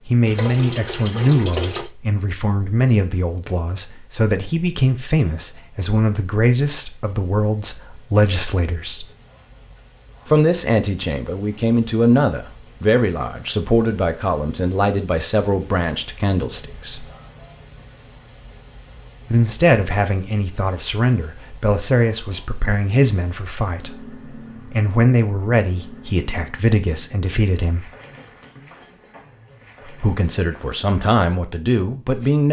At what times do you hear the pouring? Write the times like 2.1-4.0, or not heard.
0.2-1.9.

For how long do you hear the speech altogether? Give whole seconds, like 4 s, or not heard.
27 s.